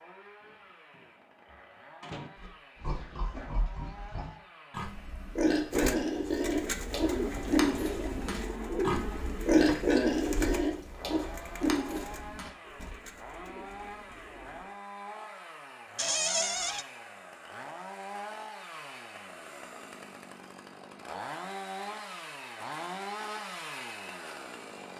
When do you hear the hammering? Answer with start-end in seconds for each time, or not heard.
not heard.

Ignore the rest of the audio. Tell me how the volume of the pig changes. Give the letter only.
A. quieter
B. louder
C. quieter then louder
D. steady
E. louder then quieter
E.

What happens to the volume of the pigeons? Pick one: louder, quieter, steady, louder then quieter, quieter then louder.
quieter.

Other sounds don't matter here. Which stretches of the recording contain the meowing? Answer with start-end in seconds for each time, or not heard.
not heard.